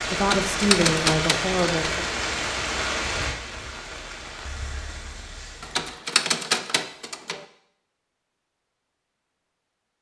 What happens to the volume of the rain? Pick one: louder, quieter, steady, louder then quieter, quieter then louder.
quieter.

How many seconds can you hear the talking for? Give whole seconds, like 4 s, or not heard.
2 s.